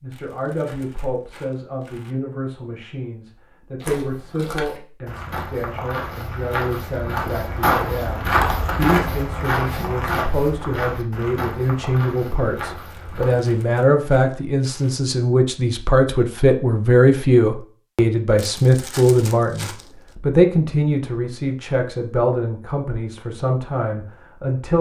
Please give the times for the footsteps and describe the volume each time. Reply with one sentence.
The footsteps can be heard from 3.8 to 13.4 s, getting louder then quieter.